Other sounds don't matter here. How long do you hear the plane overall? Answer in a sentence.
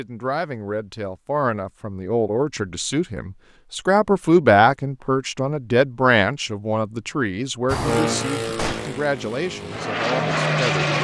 You can hear the plane for 3 seconds altogether.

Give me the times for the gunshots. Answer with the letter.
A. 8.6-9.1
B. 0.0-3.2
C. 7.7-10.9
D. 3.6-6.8
A.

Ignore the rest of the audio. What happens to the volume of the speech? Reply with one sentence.
The volume of the speech goes up, then down.